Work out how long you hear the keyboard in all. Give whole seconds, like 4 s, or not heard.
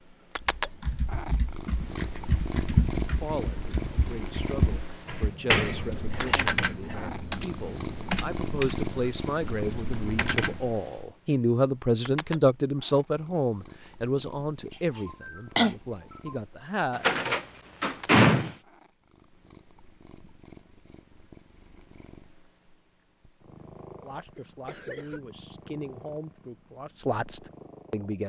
10 s.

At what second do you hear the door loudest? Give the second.
18 s.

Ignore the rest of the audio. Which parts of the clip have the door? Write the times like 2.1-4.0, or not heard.
5.0-6.3, 16.9-18.6.